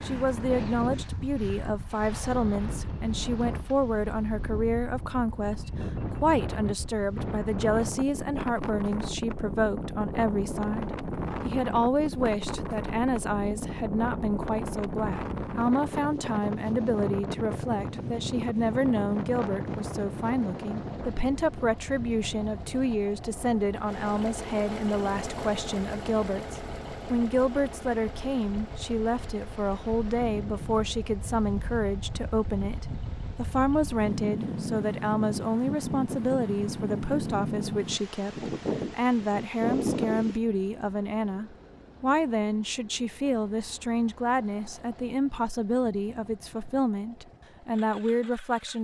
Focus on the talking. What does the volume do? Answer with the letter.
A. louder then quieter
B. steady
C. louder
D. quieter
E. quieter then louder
B.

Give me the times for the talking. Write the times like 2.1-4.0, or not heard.
0.0-48.7.